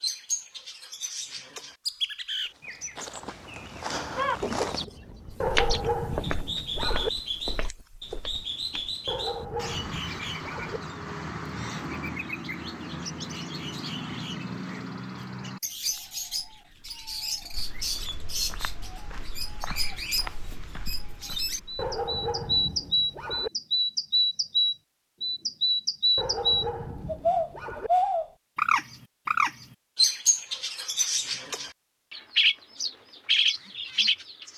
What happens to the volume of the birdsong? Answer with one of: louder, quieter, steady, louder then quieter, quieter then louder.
louder.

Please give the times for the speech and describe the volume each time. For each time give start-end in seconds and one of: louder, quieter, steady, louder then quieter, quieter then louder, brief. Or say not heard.
not heard.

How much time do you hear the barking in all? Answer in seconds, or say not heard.
7 s.